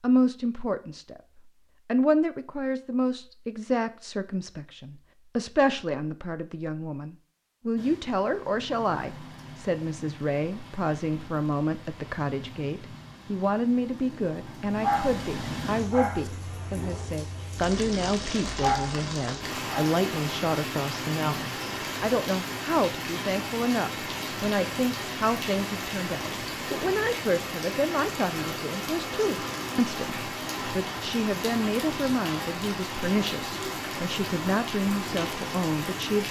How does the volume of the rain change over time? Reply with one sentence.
The loudness of the rain goes up.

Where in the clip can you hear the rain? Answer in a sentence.
The rain can be heard from 7.8 to 36.2 s.